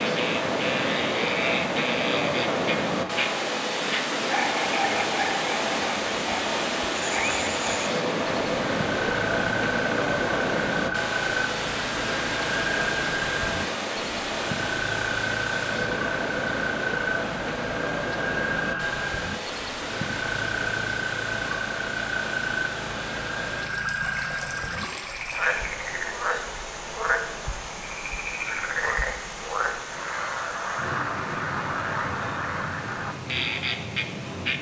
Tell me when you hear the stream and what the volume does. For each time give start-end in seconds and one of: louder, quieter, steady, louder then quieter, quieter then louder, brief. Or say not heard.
0.0-34.5 quieter.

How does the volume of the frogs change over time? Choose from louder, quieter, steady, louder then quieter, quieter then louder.
steady.